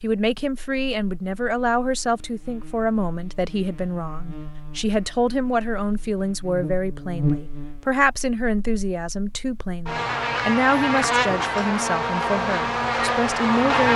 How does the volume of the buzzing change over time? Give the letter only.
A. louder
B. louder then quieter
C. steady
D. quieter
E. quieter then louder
A.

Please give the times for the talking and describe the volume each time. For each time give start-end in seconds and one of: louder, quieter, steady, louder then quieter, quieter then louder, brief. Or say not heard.
0.0-13.9 steady.